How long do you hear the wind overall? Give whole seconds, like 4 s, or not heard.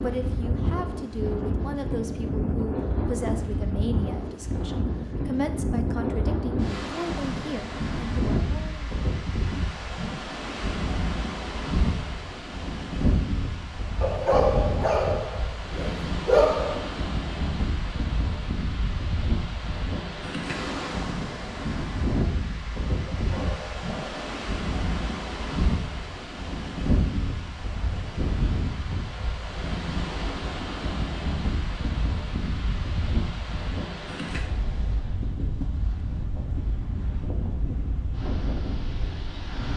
40 s.